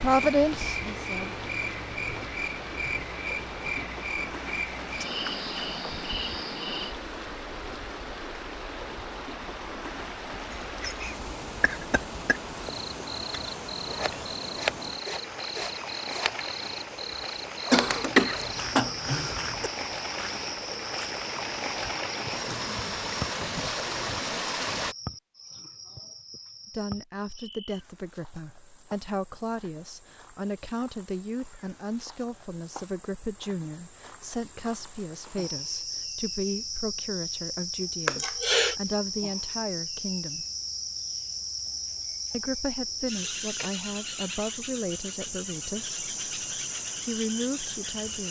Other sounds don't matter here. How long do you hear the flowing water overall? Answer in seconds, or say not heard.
25 s.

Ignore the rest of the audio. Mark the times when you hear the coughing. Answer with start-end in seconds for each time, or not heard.
10.5-12.4, 17.7-19.7, 38.0-38.8.